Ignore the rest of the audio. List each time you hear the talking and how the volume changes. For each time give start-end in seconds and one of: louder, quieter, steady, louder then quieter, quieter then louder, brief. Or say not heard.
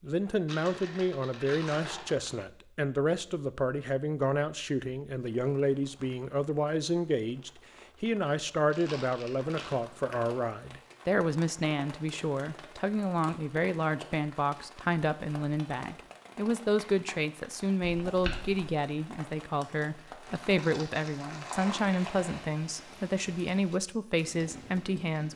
0.0-25.3 steady.